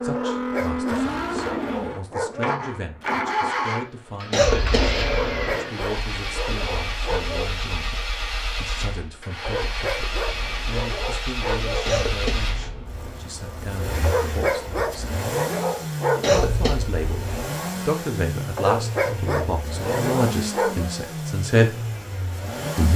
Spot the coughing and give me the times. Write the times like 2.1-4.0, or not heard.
4.3-5.5, 11.8-13.1, 16.2-17.2.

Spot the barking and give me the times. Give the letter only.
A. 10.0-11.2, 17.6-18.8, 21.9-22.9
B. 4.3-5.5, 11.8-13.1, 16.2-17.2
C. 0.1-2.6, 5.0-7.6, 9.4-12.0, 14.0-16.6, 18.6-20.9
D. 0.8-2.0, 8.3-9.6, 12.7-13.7
C.